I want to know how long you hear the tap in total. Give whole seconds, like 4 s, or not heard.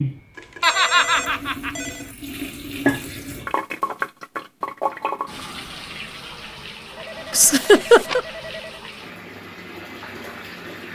11 s.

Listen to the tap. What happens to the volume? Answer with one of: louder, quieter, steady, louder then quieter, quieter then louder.
louder then quieter.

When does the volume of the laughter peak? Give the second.
8 s.